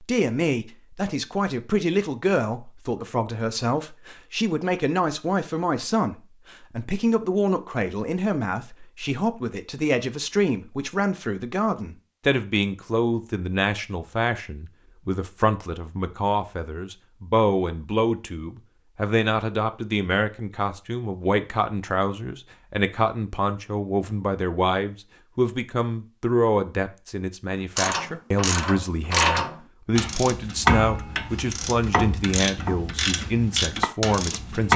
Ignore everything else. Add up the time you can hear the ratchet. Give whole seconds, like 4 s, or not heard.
7 s.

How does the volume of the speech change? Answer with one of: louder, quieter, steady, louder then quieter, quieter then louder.
steady.